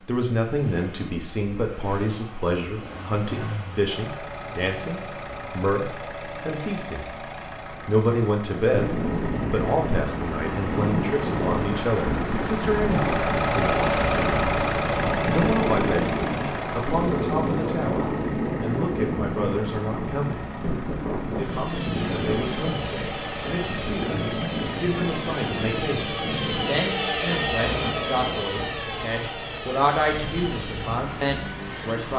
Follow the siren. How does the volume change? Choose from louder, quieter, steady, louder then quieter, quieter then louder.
louder then quieter.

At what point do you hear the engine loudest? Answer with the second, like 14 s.
14 s.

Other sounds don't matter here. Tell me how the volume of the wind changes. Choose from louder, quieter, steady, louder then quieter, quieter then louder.
quieter.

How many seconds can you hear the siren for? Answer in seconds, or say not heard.
11 s.